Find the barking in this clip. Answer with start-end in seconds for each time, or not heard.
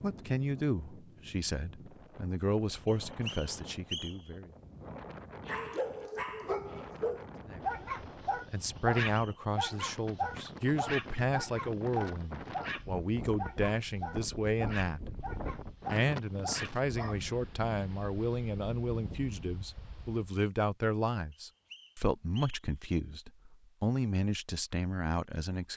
5.5-17.2.